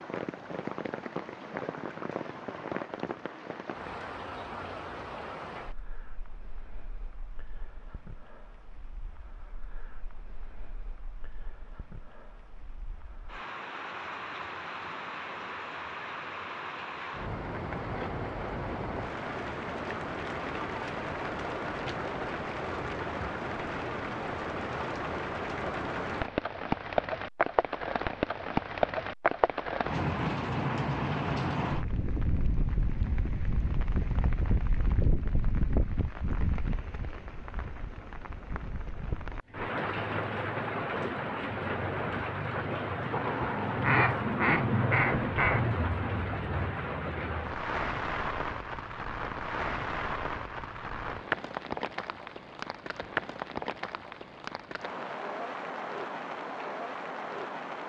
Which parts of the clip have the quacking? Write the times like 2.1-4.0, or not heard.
43.1-45.7.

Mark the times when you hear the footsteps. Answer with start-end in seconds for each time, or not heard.
not heard.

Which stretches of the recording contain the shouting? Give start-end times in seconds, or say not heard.
not heard.